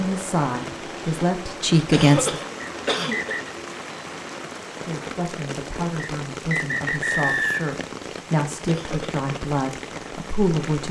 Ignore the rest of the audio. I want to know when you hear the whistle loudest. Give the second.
7 s.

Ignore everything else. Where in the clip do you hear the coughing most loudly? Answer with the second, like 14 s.
2 s.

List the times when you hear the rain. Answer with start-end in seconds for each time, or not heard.
0.0-10.8.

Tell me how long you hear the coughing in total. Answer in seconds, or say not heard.
2 s.